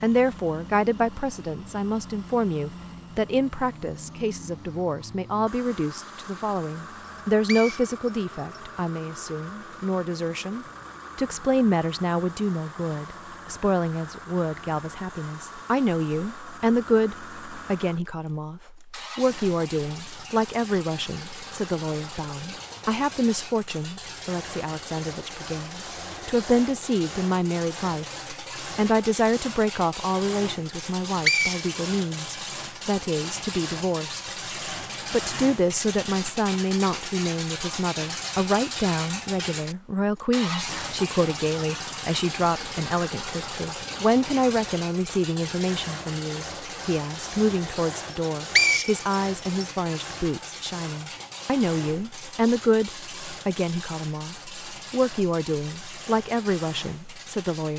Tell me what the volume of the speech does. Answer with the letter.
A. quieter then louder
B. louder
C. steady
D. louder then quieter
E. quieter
C.